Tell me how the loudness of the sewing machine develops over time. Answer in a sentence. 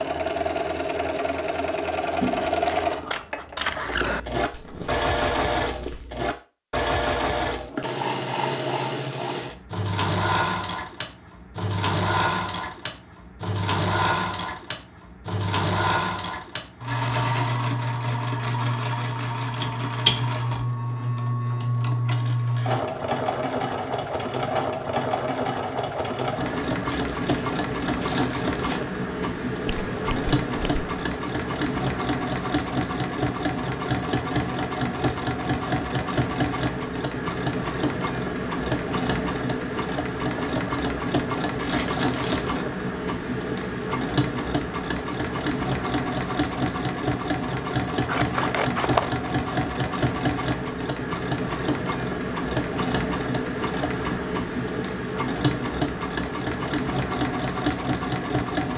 The volume of the sewing machine stays about the same.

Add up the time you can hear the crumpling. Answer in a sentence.
The crumpling can be heard for 5 seconds in total.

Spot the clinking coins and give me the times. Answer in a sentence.
You can't hear the clinking coins here.